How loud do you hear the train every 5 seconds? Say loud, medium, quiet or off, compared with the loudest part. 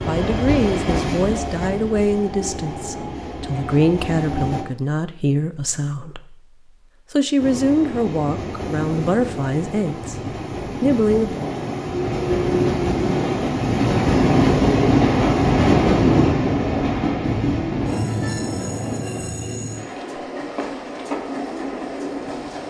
medium, medium, loud, loud, medium.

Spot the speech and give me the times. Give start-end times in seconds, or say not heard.
0.1-6.4, 7.1-11.3.